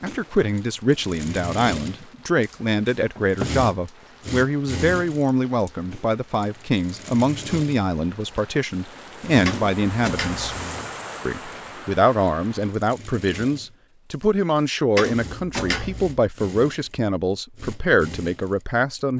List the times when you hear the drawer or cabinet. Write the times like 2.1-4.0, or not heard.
3.1-3.6, 9.4-10.6, 14.9-16.2.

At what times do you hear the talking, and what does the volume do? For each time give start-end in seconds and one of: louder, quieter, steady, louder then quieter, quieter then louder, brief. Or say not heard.
0.0-10.6 steady
11.2-19.1 steady.